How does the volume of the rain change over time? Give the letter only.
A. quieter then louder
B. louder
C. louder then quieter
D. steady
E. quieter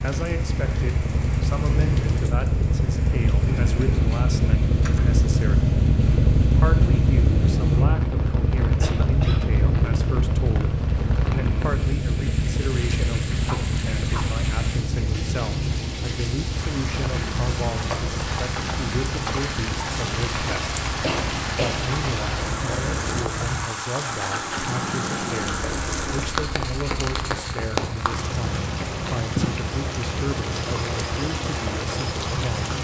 B.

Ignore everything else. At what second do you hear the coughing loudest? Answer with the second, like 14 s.
21 s.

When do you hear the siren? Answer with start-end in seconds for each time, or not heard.
not heard.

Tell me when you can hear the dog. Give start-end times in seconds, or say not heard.
13.4-14.3.